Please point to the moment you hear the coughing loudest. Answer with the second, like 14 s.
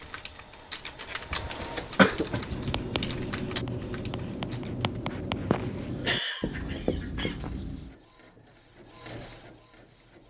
2 s.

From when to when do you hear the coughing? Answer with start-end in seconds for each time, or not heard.
1.3-2.8, 5.5-7.5.